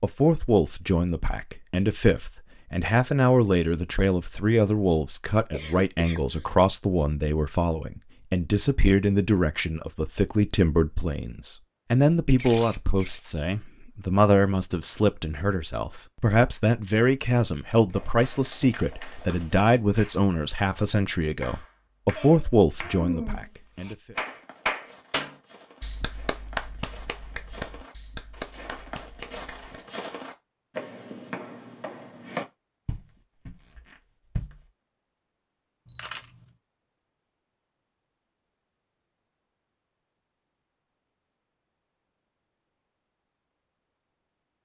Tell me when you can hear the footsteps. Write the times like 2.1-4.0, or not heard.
24.1-34.6.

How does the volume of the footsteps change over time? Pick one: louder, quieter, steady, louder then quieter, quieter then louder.
louder.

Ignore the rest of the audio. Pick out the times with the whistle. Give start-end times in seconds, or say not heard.
not heard.